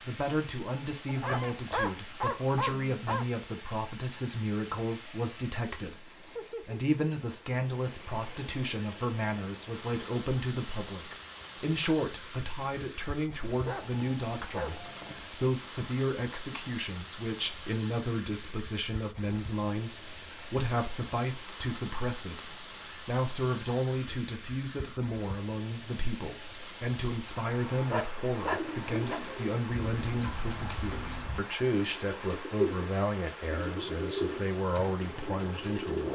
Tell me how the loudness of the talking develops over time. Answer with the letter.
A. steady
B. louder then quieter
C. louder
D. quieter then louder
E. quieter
A.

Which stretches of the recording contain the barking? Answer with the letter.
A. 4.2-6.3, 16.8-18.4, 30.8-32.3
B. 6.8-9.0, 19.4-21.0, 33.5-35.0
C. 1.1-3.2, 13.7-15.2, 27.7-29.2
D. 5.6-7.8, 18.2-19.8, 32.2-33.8
C.